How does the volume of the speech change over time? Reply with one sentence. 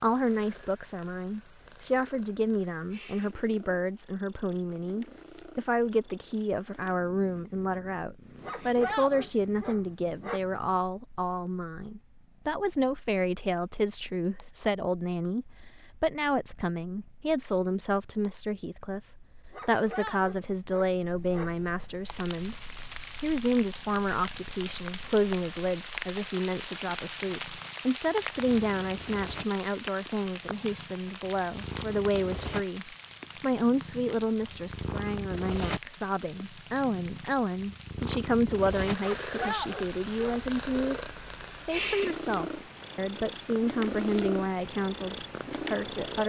The volume of the speech stays about the same.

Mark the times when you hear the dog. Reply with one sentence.
The dog can be heard from 8.4 to 10.4 s, from 19.5 to 21.5 s and from 39.0 to 40.4 s.